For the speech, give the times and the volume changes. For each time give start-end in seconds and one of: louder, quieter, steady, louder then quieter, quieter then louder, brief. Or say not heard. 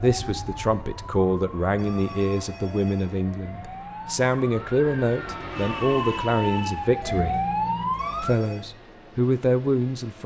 0.0-7.4 steady
8.2-10.2 brief.